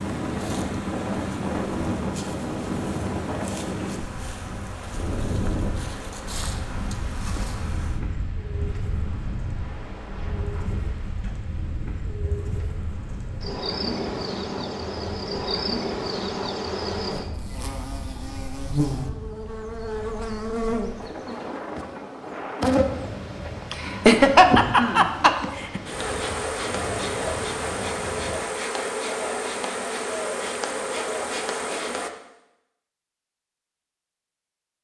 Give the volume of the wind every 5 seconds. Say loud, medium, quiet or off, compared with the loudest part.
loud, medium, medium, medium, medium, medium, off.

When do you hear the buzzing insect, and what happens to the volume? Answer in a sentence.
You can hear the buzzing insect from 0.0 to 32.1 s, getting louder.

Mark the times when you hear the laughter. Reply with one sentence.
You can hear the laughter from 23.7 to 25.8 s.